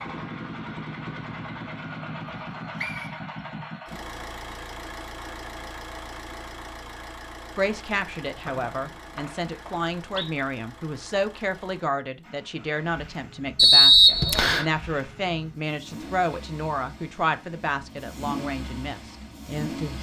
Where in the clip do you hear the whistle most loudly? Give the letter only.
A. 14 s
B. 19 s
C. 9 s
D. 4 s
A.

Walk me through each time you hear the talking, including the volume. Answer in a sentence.
The talking can be heard from 7.5 to 19.9 s, at a steady volume.